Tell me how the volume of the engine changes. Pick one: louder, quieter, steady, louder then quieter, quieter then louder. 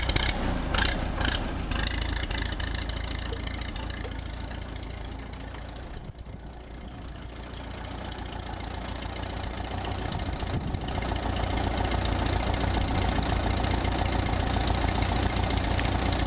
quieter then louder.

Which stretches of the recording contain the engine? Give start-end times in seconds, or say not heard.
0.0-16.2.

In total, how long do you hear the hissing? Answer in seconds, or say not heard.
2 s.